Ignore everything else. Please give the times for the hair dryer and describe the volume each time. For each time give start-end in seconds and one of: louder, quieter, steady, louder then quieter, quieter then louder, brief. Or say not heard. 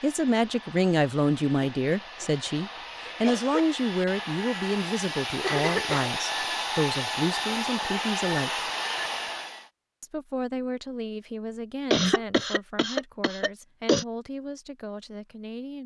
0.0-9.7 louder.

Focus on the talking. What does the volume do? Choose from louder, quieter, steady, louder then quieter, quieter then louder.
quieter.